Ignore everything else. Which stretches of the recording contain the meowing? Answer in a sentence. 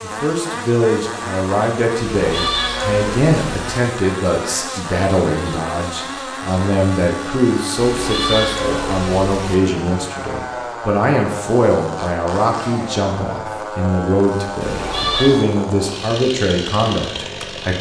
You can hear the meowing from 2.0 to 3.8 s, from 7.8 to 9.6 s and from 14.6 to 15.4 s.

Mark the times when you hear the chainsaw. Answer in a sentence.
You can hear the chainsaw from 0.0 to 17.7 s.